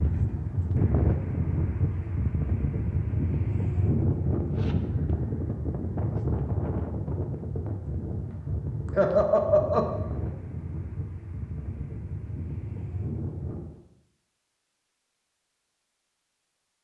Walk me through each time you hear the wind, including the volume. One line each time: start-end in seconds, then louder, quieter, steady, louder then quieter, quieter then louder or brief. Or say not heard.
0.0-13.8 quieter.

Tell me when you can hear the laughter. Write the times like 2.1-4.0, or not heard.
8.9-9.9.